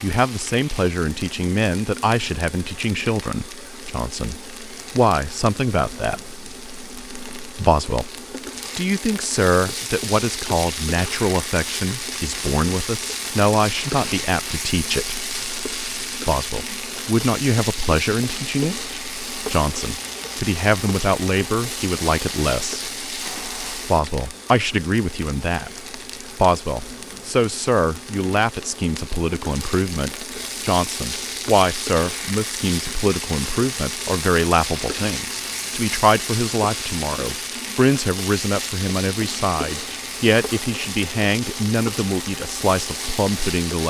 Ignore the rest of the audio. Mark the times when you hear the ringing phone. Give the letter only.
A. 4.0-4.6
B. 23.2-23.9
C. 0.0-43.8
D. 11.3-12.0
B.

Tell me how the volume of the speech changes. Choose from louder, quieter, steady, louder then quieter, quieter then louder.
steady.